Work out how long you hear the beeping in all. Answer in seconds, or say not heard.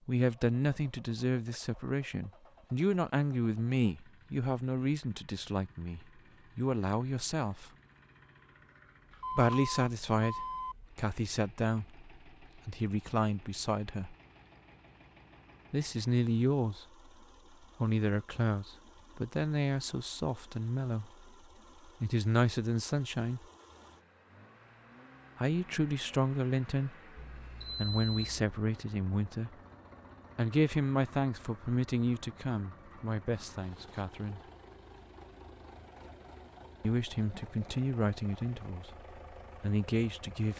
3 s.